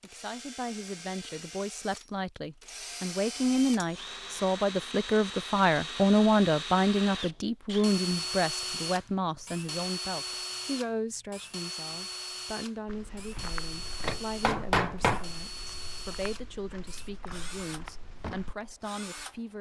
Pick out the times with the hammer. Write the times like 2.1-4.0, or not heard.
13.3-15.3.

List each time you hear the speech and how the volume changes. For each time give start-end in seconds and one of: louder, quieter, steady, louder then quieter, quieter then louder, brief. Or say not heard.
0.0-19.5 louder then quieter.